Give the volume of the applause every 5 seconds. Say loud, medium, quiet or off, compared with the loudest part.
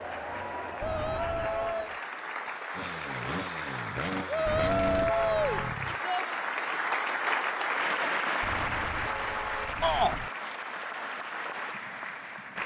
medium, loud, medium.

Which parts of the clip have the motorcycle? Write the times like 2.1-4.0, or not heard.
2.8-6.0.